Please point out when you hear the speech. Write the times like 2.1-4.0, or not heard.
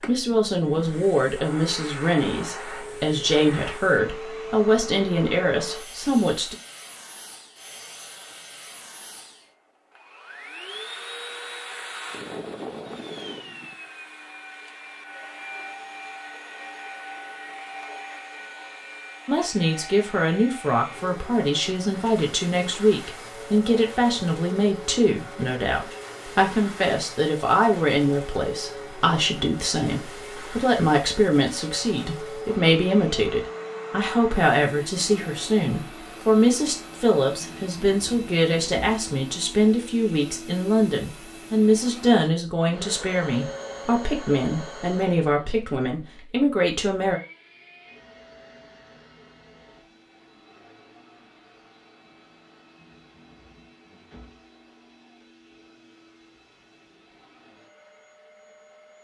0.1-6.5, 19.2-47.2.